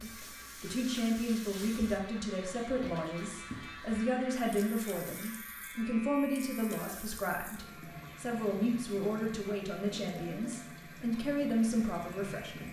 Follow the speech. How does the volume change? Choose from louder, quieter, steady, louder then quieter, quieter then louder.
steady.